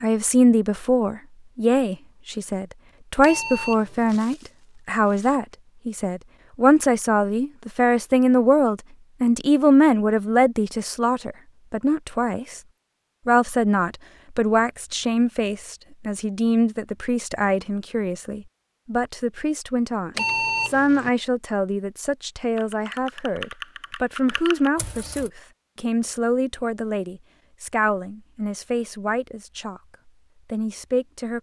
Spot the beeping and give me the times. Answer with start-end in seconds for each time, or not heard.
3.2-4.2, 20.1-21.1.